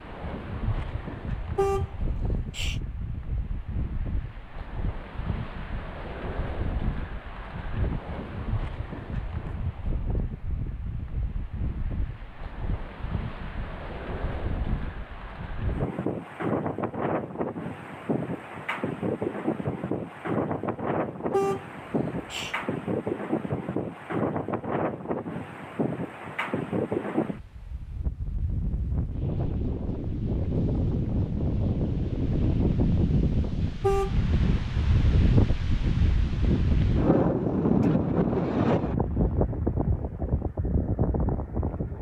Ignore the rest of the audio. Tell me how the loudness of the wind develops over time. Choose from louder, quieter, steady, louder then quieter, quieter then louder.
louder.